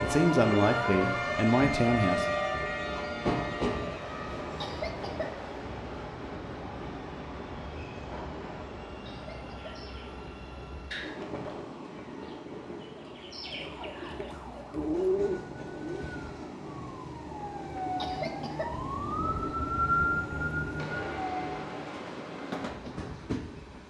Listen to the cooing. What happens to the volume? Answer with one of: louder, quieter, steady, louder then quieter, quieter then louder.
quieter then louder.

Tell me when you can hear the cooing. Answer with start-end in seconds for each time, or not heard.
9.6-16.1.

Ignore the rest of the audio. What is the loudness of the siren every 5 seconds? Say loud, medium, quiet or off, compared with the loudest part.
loud, off, quiet, loud, loud.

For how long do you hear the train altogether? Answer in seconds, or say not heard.
24 s.